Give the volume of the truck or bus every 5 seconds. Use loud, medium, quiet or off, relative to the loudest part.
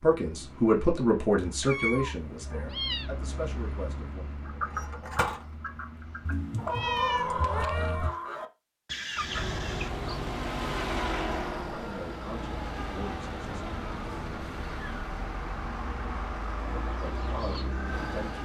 medium, medium, loud, loud.